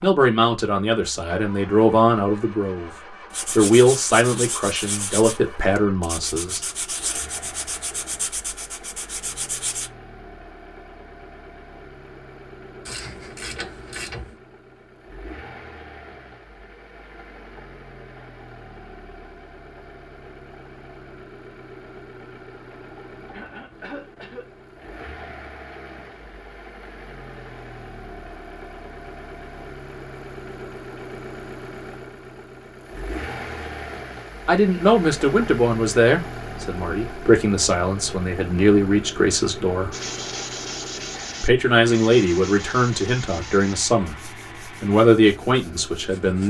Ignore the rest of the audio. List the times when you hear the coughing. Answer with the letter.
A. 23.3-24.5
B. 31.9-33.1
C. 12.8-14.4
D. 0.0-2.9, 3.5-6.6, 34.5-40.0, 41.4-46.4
A.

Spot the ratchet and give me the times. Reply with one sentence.
You can hear the ratchet from 12.8 to 14.4 s.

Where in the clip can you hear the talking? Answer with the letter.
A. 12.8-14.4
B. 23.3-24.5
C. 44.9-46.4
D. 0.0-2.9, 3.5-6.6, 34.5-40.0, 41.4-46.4
D.